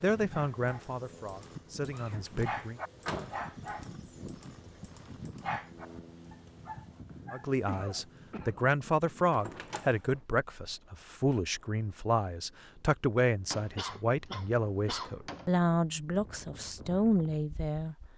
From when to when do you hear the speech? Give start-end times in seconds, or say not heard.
0.0-2.8, 7.3-17.9.